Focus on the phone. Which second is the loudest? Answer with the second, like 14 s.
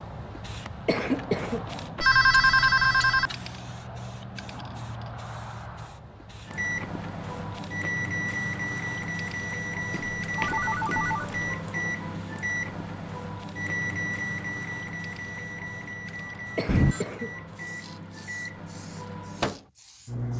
2 s.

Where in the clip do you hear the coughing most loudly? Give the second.
1 s.